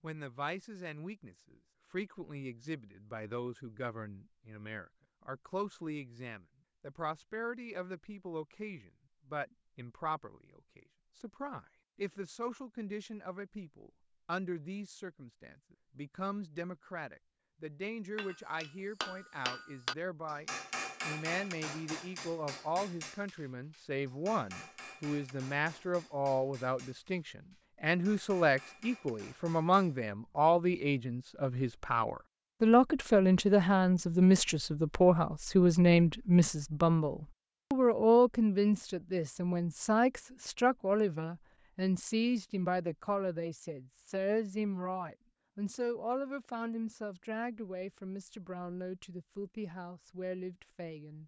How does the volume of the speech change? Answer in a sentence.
The loudness of the speech goes up, then down.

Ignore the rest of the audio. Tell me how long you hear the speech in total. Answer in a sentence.
The speech can be heard for 51 seconds in total.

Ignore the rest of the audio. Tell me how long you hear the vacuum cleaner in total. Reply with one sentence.
The vacuum cleaner can't be heard in this clip.